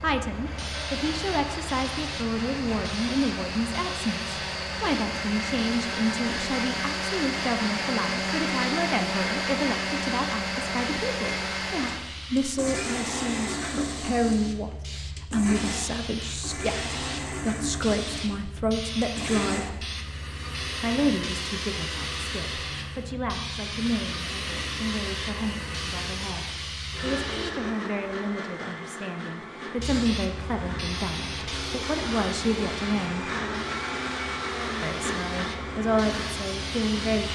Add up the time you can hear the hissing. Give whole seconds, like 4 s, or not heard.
35 s.